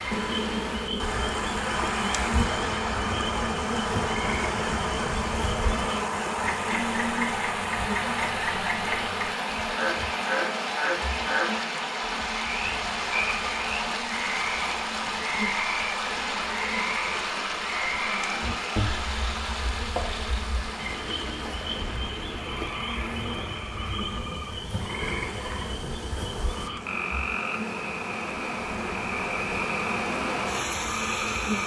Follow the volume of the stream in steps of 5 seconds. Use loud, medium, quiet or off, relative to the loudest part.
loud, loud, loud, loud, medium, medium, loud.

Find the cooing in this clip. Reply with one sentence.
The cooing can't be heard in this clip.